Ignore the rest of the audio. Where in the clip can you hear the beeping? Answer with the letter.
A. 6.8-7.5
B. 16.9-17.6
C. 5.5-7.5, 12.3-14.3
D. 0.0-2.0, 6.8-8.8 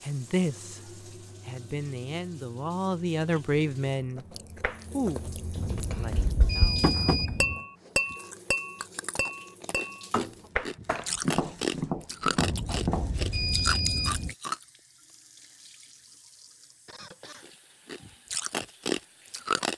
C.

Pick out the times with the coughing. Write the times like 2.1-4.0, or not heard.
16.9-17.6.